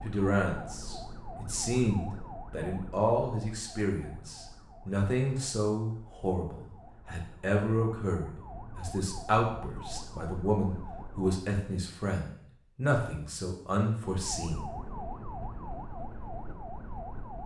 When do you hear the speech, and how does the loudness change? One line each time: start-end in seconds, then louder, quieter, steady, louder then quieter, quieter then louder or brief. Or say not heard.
0.0-14.7 steady.